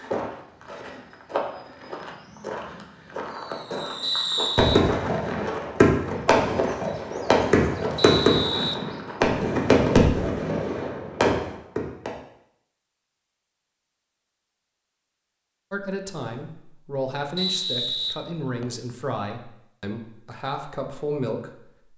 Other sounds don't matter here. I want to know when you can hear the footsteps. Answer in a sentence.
You can hear the footsteps from 0.0 to 9.2 s.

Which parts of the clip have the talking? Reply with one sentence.
You can hear the talking from 15.7 to 21.6 s.